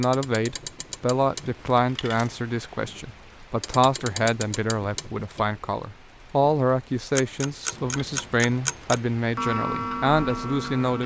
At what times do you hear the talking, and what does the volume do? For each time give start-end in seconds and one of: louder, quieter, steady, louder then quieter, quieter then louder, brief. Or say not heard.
0.0-11.0 steady.